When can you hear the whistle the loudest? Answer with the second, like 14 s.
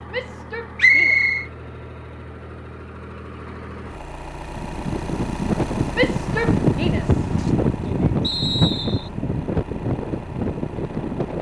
1 s.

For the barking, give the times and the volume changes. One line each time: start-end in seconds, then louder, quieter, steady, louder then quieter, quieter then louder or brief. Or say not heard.
not heard.